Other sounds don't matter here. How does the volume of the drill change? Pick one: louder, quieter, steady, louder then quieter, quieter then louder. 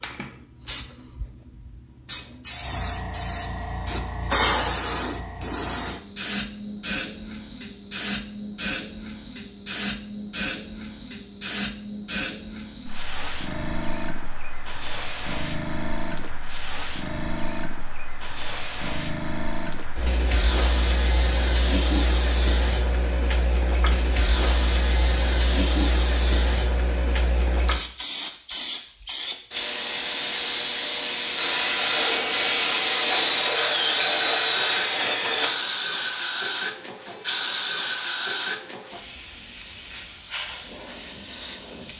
steady.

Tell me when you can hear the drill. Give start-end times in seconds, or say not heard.
31.4-35.5.